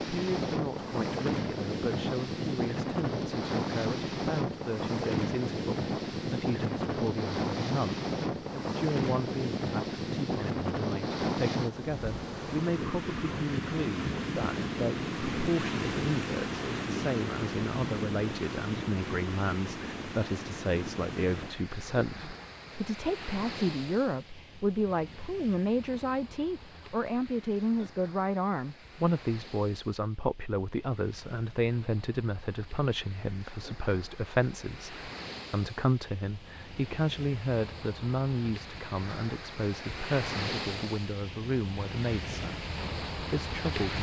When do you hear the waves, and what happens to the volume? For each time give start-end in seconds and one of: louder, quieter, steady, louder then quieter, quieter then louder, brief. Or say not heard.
0.0-43.9 quieter then louder.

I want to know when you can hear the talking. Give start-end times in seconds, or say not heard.
0.1-43.9.